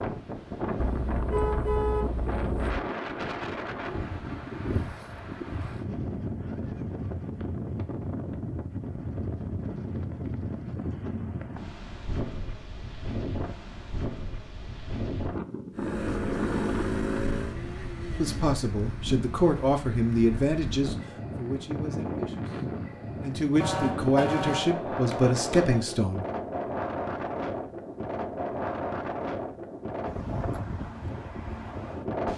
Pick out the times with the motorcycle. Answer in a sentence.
You can hear the motorcycle from 15.7 to 18.6 s.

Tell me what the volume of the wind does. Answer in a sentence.
The loudness of the wind stays about the same.